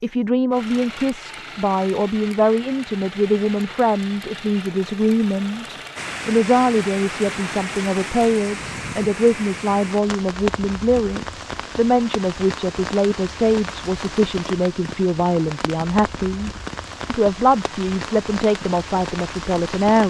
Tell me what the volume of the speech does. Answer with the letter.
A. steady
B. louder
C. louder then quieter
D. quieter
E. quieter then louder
A.